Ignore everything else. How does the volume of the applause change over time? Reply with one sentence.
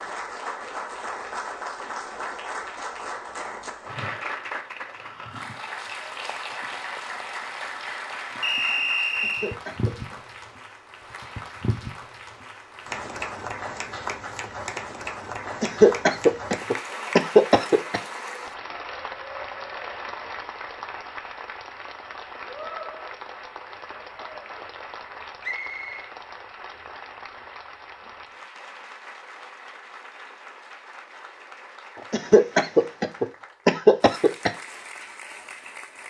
The loudness of the applause goes down.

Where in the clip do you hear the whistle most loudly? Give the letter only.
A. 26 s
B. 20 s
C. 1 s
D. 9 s
D.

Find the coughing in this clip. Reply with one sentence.
The coughing can be heard from 9.2 to 10.2 s, from 15.6 to 18.0 s and from 32.1 to 34.5 s.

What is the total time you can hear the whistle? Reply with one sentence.
The whistle can be heard for 2 seconds in total.